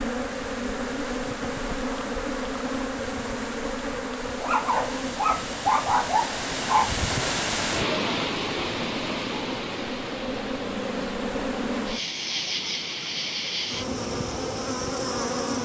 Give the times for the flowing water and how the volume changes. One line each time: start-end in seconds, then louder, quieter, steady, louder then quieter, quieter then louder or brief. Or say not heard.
0.0-15.6 louder then quieter.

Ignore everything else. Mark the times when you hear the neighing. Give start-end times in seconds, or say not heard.
not heard.